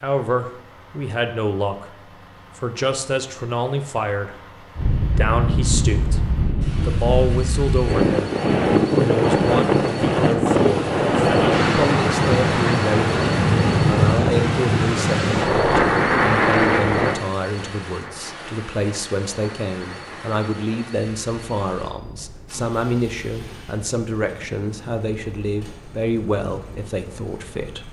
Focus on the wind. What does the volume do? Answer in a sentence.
The loudness of the wind goes down.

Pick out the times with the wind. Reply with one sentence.
You can hear the wind from 4.8 to 27.8 s.